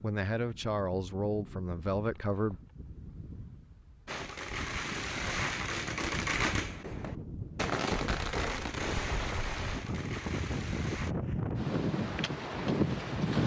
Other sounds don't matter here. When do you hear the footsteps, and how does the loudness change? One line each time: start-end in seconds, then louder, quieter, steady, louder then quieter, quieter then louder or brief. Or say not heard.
not heard.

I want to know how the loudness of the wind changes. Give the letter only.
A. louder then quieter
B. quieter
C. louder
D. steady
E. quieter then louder
C.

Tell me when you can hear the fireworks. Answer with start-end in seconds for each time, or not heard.
4.0-11.2.